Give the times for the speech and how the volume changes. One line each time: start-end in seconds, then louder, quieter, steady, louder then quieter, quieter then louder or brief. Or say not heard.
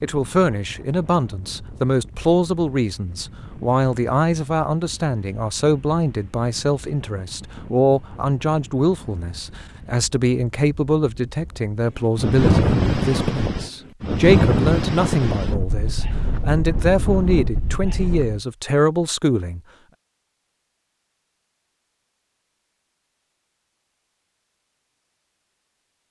0.0-19.6 steady.